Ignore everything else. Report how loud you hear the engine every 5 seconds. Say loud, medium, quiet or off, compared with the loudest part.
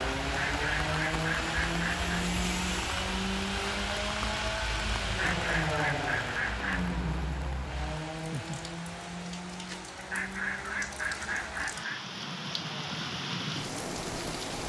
loud, loud, quiet.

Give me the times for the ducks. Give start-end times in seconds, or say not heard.
0.2-2.0, 5.0-6.9, 9.9-12.1.